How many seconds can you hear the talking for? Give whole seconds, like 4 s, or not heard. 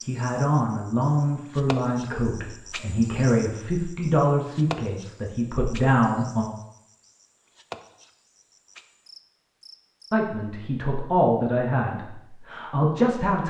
10 s.